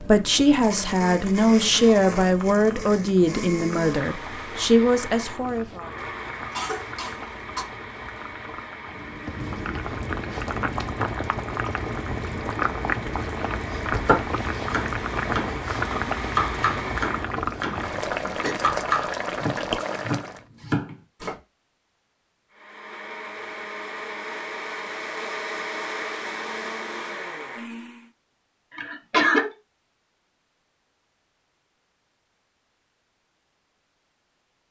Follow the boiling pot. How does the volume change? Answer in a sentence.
The loudness of the boiling pot goes up.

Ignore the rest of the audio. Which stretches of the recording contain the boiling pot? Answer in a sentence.
The boiling pot can be heard from 0.0 to 20.4 s.